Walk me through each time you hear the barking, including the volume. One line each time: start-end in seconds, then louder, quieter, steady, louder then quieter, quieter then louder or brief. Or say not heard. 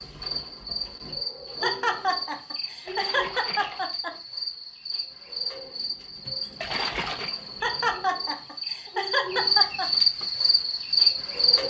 not heard.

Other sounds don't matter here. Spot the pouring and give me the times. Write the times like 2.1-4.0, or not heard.
2.9-3.9, 6.6-7.3.